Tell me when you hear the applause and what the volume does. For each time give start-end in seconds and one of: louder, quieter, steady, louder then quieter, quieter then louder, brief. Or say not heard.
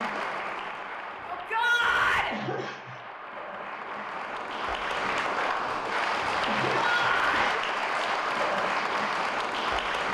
0.0-10.0 louder.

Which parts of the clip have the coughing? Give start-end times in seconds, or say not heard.
2.3-3.0, 6.5-7.7.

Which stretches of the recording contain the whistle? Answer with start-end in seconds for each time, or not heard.
not heard.